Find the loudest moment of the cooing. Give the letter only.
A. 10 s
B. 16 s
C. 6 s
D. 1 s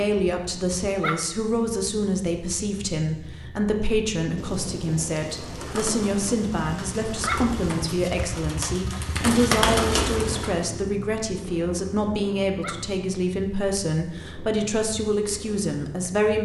A.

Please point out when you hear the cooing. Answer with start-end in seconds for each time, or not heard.
5.2-10.8.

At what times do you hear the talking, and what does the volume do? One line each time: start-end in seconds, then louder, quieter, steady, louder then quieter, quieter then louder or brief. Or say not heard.
0.0-16.3 steady.